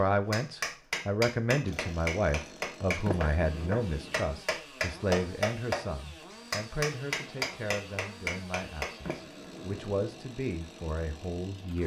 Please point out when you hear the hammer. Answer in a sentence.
The hammer can be heard from 0.3 to 9.2 s.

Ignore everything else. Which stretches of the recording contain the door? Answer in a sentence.
You can hear the door from 3.0 to 4.4 s and from 9.1 to 10.1 s.